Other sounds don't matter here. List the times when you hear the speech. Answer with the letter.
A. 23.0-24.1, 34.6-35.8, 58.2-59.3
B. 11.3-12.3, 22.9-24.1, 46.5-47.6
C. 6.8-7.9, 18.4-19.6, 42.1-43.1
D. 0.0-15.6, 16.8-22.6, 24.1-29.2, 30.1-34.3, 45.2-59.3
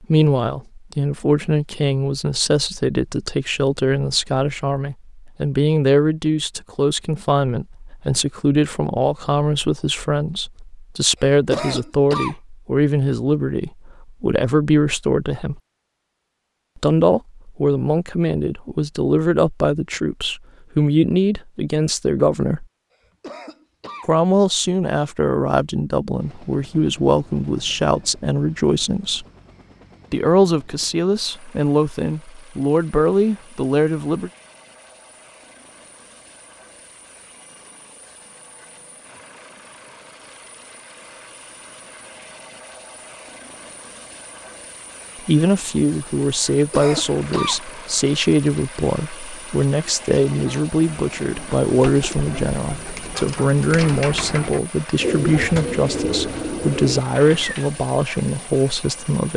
D.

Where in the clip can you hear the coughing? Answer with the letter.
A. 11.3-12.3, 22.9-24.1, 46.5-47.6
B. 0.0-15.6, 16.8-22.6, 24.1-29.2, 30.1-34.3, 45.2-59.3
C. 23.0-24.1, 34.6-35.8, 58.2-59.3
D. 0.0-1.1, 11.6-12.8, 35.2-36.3
A.